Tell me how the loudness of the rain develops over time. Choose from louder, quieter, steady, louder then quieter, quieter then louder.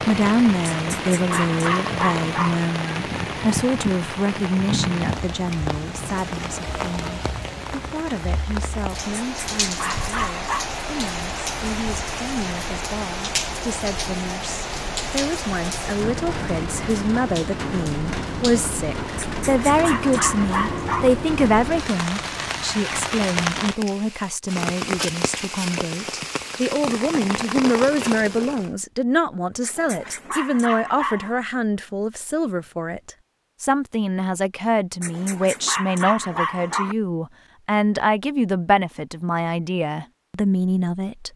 steady.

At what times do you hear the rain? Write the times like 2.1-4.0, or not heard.
0.0-28.7.